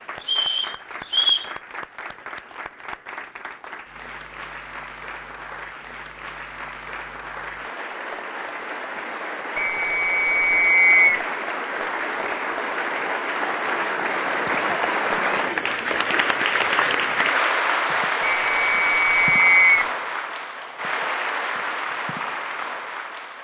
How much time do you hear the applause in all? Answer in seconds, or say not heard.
23 s.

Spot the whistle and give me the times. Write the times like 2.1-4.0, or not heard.
0.2-1.5, 9.6-11.2, 18.2-19.9.